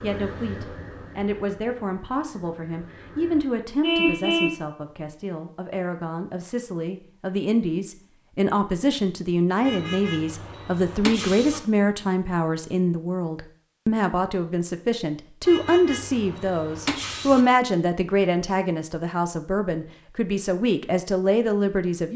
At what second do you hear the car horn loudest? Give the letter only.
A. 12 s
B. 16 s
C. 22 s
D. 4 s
D.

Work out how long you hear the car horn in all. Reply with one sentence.
You can hear the car horn for 5 seconds altogether.